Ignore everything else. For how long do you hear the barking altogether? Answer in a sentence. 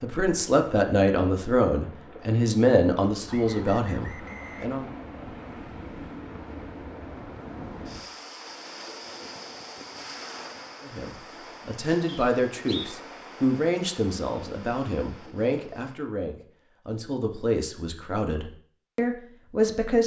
You can't hear the barking here.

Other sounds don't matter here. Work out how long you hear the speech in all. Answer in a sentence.
You can hear the speech for 14 seconds altogether.